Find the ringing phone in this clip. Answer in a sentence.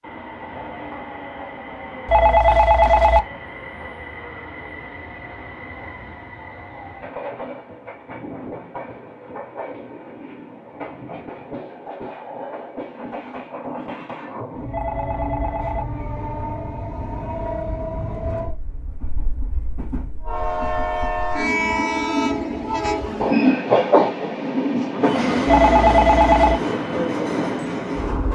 You can hear the ringing phone from 2.0 to 3.2 s, from 14.7 to 15.8 s and from 25.4 to 26.6 s.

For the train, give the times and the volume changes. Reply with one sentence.
You can hear the train from 0.0 to 28.3 s, getting louder.